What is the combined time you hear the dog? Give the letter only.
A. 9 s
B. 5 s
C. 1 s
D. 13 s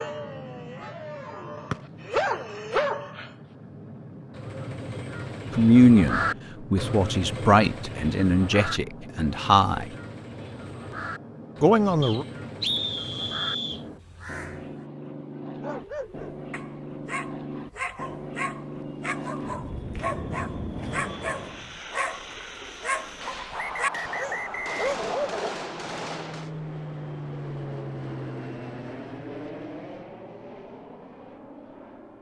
D.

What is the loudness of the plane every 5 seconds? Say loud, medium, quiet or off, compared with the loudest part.
medium, medium, medium, loud, loud, loud, medium.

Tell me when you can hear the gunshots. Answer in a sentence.
The gunshots can be heard from 23.2 to 26.6 s.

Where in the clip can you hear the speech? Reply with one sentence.
You can hear the speech from 5.5 to 9.8 s and from 11.6 to 12.2 s.